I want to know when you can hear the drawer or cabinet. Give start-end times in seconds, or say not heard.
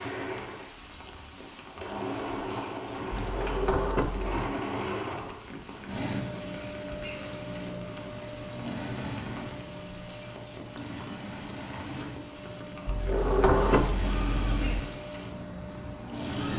3.1-4.3, 12.8-14.7.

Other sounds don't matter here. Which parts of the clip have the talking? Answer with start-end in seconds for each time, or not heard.
not heard.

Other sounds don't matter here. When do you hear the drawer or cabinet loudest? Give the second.
14 s.